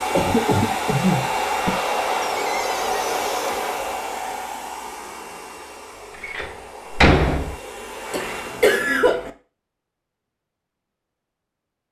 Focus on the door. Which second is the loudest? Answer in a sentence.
The volume of the door peaks at 7 seconds.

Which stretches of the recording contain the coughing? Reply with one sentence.
The coughing can be heard from 0.1 to 1.8 s and from 8.1 to 9.3 s.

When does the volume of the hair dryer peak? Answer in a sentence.
The loudest moment of the hair dryer is at 2 seconds.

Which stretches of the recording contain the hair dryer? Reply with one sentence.
The hair dryer can be heard from 0.0 to 8.8 s.